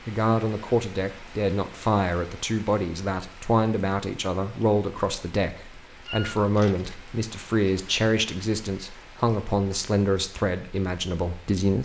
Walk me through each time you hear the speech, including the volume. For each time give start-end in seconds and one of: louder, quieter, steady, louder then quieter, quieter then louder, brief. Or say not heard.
0.1-11.8 steady.